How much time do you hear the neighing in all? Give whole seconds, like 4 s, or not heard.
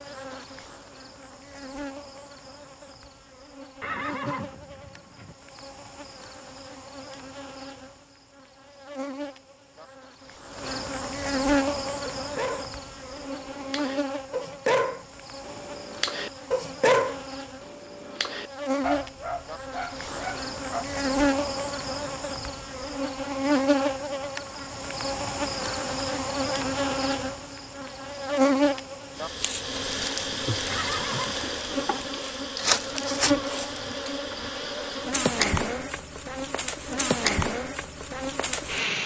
2 s.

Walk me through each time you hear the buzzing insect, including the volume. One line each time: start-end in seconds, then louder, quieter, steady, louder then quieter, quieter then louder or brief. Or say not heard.
0.0-39.0 louder.